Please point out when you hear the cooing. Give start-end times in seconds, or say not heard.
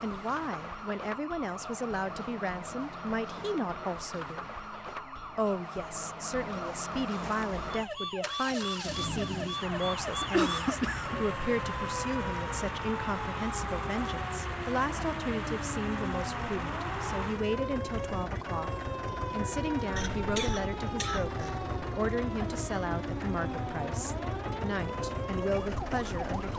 not heard.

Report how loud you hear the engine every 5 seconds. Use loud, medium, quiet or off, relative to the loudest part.
off, loud, loud, loud, loud, loud.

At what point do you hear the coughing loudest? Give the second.
11 s.